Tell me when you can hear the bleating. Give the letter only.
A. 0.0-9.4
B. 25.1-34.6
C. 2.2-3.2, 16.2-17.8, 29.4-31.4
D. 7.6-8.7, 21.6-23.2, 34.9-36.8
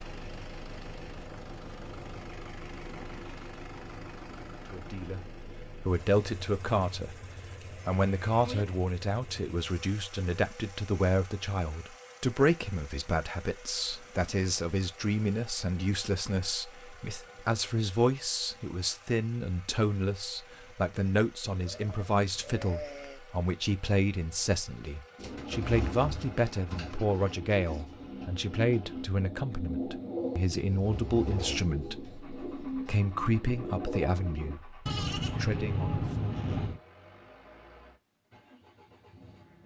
D.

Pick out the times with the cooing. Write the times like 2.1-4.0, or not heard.
25.1-34.6.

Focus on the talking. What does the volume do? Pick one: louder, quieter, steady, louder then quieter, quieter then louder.
steady.